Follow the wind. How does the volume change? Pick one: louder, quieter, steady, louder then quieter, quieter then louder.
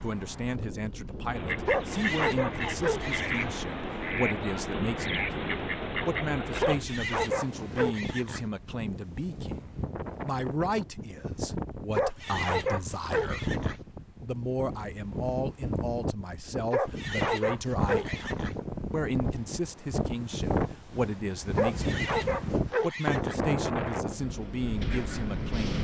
louder.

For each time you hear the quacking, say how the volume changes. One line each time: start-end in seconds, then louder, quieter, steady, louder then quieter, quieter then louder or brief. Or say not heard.
1.2-6.8 steady.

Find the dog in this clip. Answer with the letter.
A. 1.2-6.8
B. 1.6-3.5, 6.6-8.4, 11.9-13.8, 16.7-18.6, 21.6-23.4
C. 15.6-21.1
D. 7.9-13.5
B.